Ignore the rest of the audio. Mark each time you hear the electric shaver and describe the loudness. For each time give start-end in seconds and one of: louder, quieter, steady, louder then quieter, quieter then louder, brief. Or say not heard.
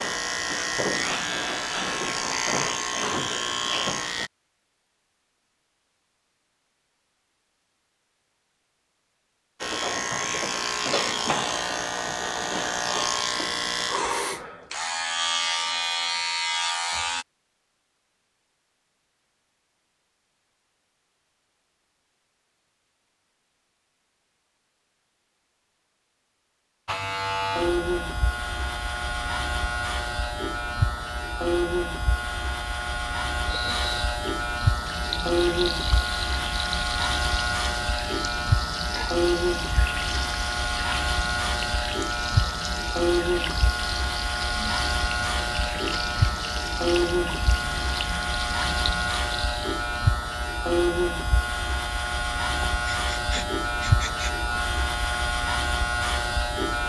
0.0-4.3 steady
9.6-17.2 steady
26.9-56.8 steady.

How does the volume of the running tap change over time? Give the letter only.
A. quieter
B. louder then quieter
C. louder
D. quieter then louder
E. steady
E.